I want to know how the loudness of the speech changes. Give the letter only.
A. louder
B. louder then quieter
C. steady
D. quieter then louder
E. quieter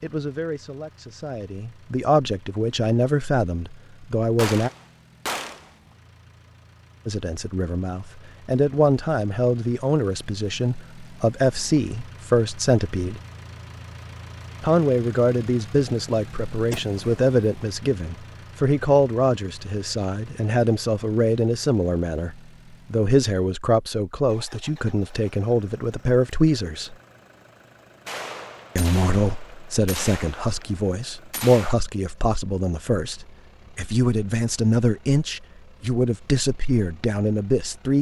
C.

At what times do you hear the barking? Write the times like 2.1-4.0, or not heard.
not heard.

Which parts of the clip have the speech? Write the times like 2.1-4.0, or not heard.
0.0-4.7, 7.0-13.2, 14.6-26.9, 28.8-37.9.